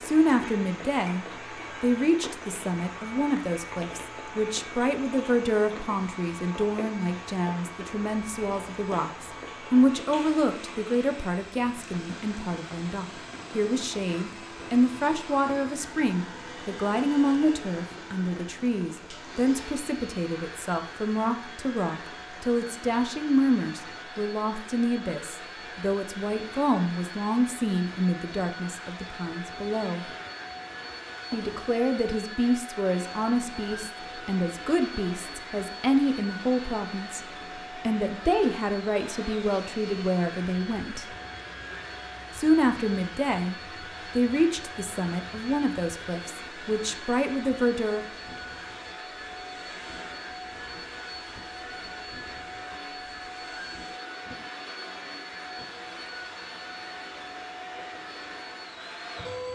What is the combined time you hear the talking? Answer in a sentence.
You can hear the talking for 45 seconds altogether.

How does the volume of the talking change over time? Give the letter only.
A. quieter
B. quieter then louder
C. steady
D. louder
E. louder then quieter
C.